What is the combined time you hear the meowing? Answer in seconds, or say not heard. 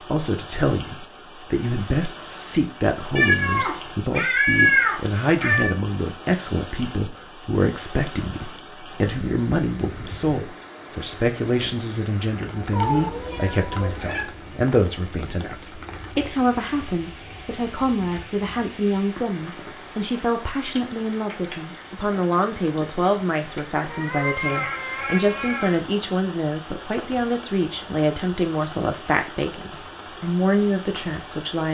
6 s.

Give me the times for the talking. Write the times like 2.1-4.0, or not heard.
0.1-31.7.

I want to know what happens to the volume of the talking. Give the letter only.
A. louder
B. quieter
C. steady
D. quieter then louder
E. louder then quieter
C.